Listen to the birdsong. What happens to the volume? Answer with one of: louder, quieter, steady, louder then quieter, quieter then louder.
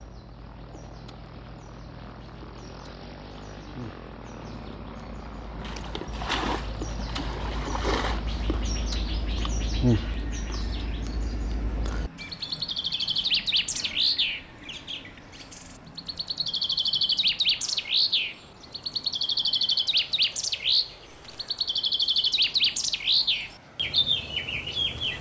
louder.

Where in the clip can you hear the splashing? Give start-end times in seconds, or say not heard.
5.6-8.2.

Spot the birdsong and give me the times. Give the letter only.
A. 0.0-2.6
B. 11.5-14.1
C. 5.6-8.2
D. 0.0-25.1
D.